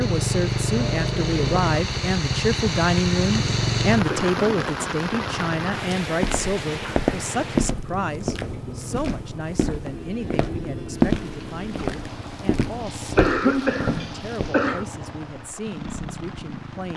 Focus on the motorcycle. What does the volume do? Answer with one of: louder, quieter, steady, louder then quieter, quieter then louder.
quieter.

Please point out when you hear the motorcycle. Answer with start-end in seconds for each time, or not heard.
0.0-16.9.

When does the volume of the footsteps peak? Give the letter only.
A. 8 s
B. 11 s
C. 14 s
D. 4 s
B.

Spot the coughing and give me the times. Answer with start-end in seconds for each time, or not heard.
4.0-4.8, 13.2-14.8.